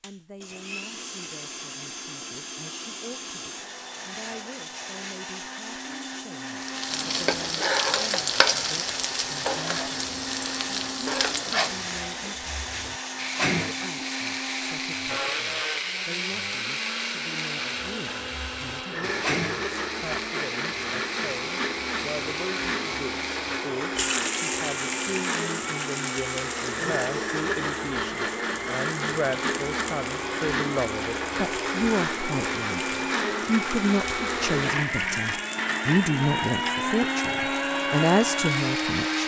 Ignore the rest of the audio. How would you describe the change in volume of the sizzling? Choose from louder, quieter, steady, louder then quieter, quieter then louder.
quieter.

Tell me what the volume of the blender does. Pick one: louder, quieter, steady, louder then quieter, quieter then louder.
louder.